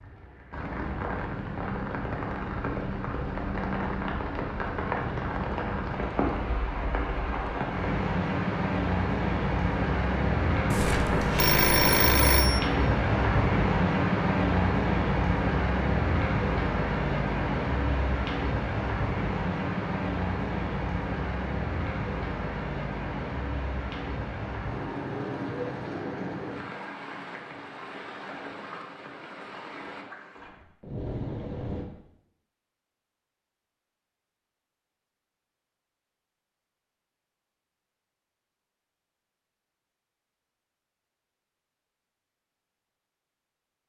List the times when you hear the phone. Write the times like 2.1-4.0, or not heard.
10.7-12.6.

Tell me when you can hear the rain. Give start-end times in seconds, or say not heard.
0.0-31.9.